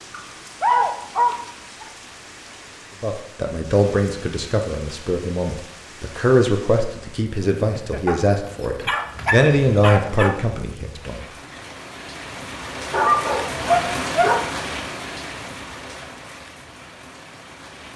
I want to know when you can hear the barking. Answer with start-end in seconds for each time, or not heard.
0.1-1.9, 8.1-10.3, 12.9-14.5.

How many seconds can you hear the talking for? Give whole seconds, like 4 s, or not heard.
8 s.